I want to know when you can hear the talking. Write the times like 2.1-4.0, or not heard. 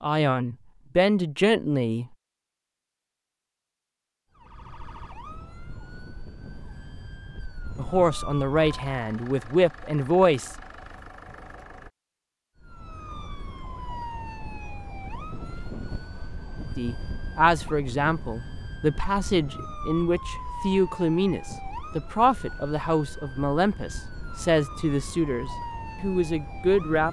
0.0-2.0, 7.8-10.5, 16.8-27.0.